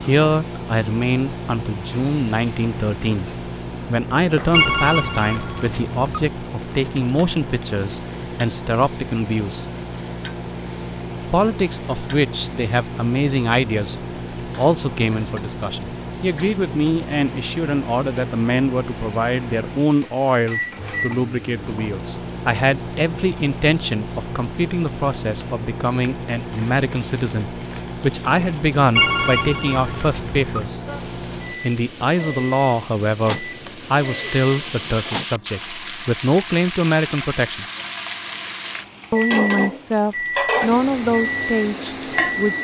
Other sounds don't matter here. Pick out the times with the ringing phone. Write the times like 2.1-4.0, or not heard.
4.5-6.3, 28.9-30.7.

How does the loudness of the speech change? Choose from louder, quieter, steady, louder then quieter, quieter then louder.
steady.